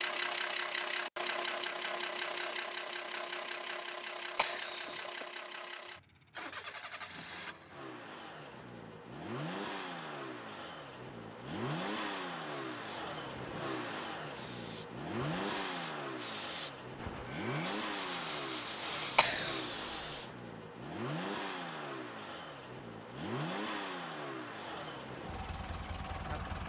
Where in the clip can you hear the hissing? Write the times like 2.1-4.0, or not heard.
11.7-20.3.